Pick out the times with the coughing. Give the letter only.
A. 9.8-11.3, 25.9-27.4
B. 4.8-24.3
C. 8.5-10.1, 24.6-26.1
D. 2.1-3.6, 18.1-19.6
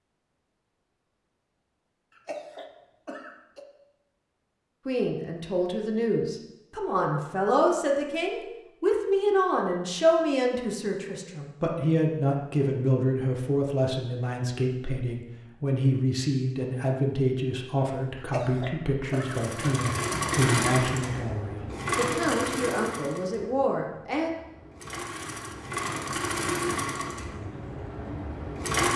D.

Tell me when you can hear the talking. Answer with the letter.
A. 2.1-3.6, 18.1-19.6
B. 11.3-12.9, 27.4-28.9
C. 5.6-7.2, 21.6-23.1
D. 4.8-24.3
D.